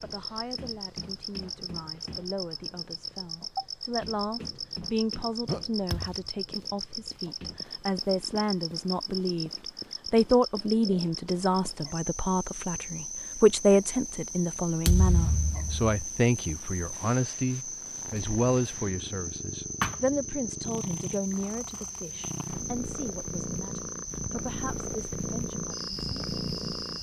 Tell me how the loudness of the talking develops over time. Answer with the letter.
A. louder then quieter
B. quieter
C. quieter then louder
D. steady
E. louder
A.